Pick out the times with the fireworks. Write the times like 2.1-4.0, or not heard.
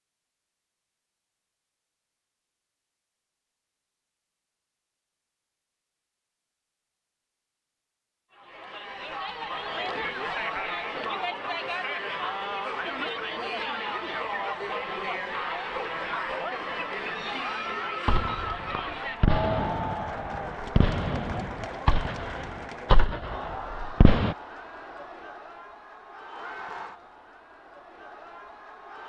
18.1-24.4.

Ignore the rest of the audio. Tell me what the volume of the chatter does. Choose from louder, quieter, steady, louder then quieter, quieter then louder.
quieter.